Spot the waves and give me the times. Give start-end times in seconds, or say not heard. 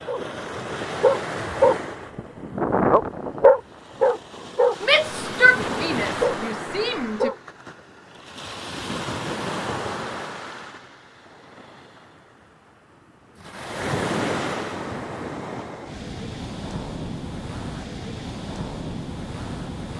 0.0-19.9.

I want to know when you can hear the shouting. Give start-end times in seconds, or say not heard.
4.8-7.3.